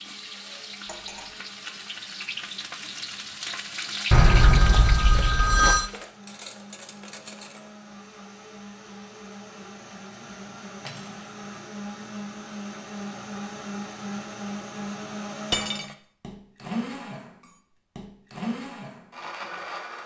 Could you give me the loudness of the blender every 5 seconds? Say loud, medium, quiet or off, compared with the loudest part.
quiet, medium, loud, loud.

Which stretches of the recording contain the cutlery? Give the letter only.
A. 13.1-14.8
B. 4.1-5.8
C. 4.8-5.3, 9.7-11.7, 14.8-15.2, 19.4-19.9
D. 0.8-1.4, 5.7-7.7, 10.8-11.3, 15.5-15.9
D.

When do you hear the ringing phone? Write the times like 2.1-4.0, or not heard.
4.1-5.8.